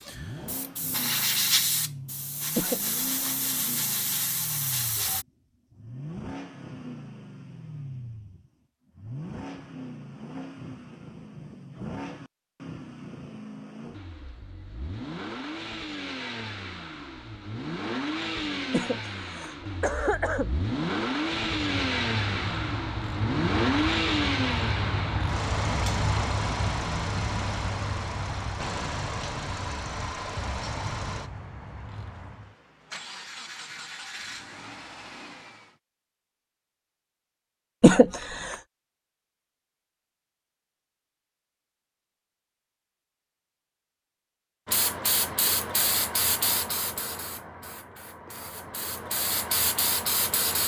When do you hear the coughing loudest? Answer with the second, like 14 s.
38 s.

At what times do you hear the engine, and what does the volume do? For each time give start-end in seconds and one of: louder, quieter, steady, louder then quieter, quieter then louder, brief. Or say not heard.
0.0-35.8 louder then quieter.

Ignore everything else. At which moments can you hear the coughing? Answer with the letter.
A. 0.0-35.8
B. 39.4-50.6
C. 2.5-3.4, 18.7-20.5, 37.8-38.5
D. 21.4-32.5
C.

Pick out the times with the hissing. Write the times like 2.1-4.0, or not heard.
0.0-5.2, 44.6-50.6.